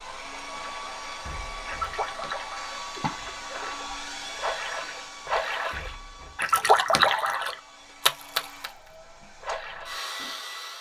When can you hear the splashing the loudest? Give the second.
7 s.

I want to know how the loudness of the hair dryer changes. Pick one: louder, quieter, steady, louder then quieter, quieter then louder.
quieter then louder.